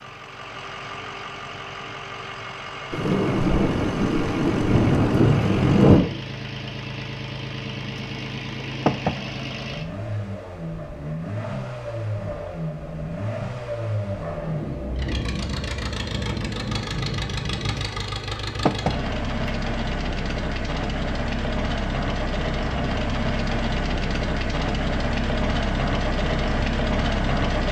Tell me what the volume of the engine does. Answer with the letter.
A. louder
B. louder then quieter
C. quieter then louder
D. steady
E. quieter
A.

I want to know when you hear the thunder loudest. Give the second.
6 s.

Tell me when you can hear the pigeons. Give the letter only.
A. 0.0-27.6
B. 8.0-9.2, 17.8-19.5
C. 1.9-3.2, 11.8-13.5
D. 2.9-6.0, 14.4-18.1
B.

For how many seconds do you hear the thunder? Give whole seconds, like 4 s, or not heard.
7 s.